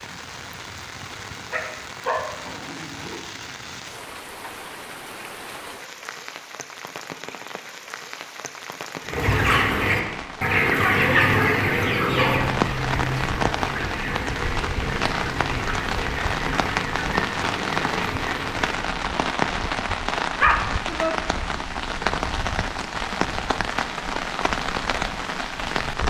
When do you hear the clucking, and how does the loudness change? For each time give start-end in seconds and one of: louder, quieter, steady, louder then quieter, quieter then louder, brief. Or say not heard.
9.0-18.9 quieter.